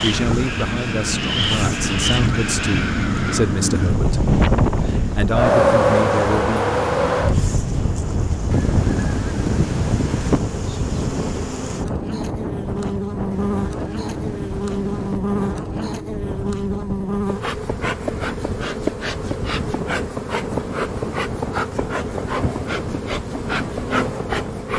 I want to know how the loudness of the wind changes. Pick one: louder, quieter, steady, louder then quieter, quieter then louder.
quieter.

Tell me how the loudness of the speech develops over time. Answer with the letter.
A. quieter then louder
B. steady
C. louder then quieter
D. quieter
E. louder
A.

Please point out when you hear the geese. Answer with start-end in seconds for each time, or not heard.
8.5-10.4, 13.3-15.2.